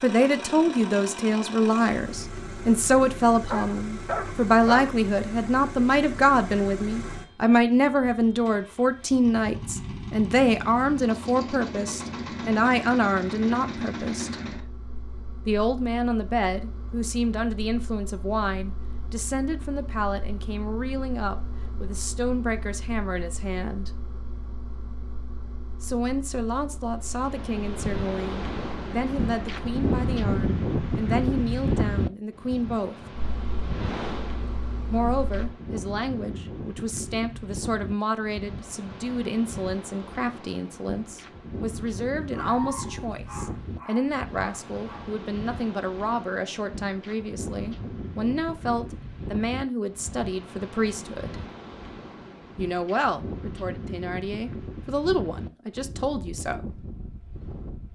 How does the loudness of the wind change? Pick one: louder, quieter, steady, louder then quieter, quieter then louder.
quieter.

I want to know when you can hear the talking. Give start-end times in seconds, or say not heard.
0.0-14.3, 15.4-23.9, 25.8-33.0, 34.9-51.4, 52.5-56.8.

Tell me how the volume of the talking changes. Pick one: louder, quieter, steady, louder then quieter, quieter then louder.
quieter.